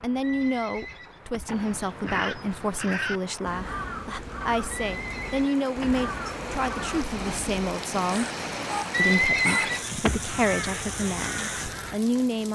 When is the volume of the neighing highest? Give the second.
9 s.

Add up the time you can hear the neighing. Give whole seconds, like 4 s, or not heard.
5 s.